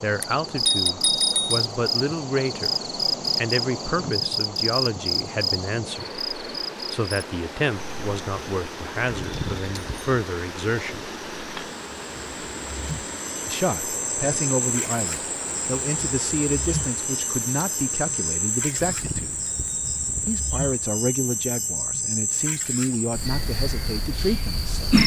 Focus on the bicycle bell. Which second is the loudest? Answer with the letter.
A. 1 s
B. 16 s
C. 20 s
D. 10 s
A.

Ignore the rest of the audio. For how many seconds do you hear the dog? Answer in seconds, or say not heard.
not heard.